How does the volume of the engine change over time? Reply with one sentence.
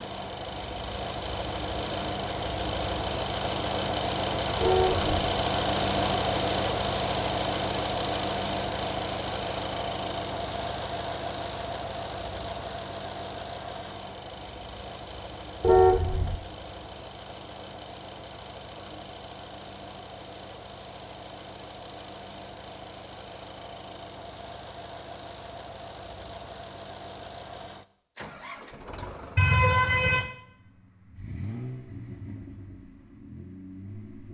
The volume of the engine goes down.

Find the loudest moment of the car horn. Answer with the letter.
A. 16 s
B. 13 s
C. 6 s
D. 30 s
A.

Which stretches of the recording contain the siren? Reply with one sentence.
The siren can't be heard in this clip.